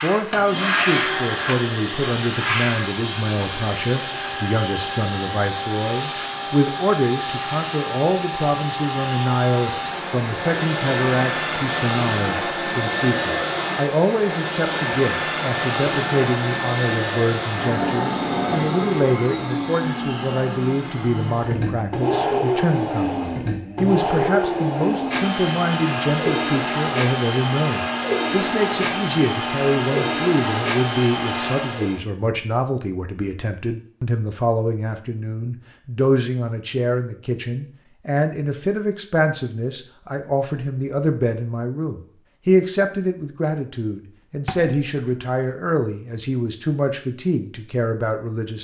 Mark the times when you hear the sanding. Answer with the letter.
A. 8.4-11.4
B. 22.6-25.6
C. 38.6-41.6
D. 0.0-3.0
D.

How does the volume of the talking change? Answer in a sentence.
The volume of the talking stays about the same.